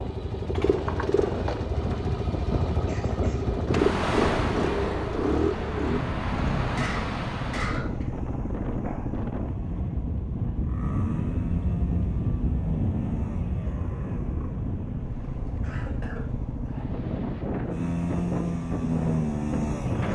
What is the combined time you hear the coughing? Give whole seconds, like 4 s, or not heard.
3 s.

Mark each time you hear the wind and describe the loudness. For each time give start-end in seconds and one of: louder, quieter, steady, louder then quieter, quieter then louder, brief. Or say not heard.
0.0-20.0 steady.